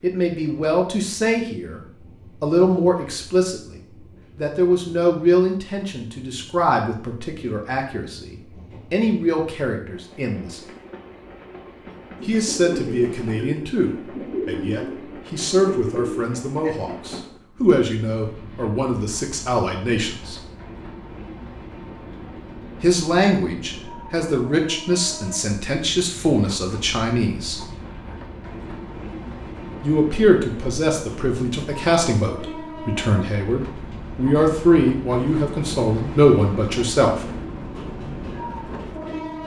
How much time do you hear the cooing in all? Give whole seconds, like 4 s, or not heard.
5 s.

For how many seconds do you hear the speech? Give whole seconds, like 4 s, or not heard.
30 s.